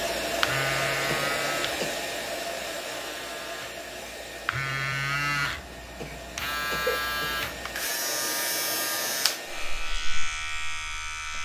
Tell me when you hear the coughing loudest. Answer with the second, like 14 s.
7 s.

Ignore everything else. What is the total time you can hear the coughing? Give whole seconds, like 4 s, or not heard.
2 s.